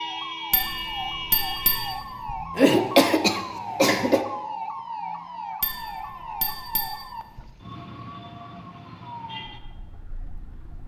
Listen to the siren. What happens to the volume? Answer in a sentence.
The loudness of the siren goes down.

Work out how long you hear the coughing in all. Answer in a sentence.
The coughing can be heard for 2 seconds in total.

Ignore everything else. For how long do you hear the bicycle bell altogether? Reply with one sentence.
The bicycle bell can be heard for 4 seconds in total.